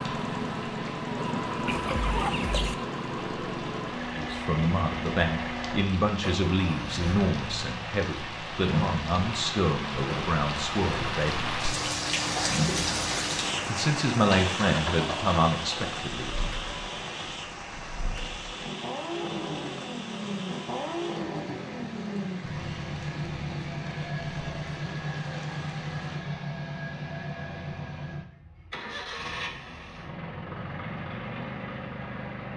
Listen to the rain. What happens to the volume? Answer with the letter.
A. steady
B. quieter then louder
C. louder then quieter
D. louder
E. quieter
C.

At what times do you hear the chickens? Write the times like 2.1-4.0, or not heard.
1.6-2.8.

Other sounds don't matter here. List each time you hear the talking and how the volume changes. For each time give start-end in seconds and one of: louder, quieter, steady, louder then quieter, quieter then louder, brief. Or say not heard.
4.2-11.6 steady
13.7-16.5 brief.